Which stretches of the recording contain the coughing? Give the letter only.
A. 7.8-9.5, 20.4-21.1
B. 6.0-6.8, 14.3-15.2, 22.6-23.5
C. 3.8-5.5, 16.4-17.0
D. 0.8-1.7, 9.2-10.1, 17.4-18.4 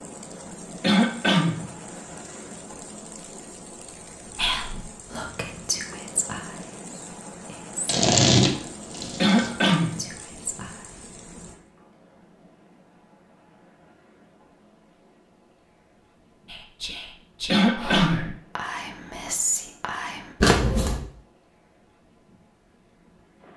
D.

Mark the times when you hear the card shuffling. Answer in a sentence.
The card shuffling can be heard from 7.8 to 9.5 s and from 20.4 to 21.1 s.